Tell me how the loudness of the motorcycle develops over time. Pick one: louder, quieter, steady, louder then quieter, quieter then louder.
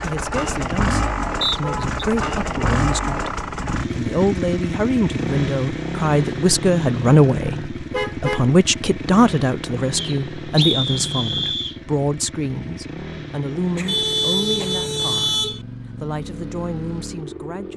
quieter.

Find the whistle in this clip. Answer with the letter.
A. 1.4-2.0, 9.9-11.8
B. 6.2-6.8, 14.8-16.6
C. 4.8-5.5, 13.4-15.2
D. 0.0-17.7
A.